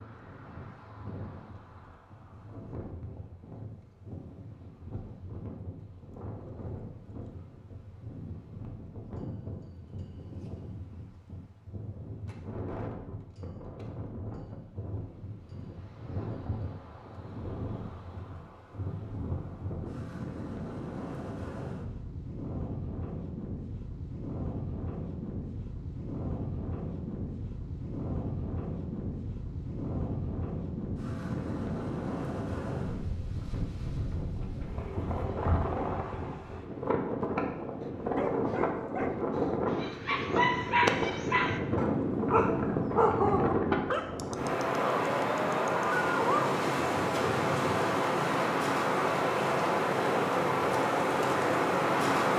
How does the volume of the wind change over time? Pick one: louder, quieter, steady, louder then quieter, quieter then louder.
louder.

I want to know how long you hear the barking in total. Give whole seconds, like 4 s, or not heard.
9 s.